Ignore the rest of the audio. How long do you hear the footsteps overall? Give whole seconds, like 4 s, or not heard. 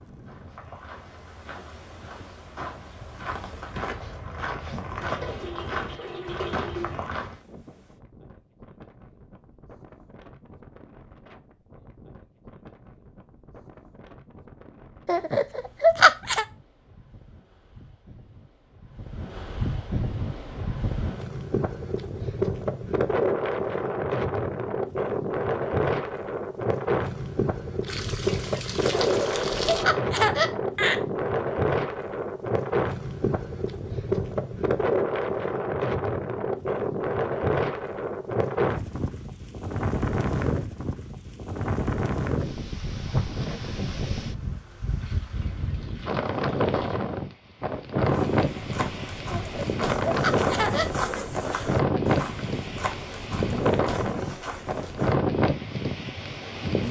14 s.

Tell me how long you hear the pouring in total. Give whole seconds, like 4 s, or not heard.
6 s.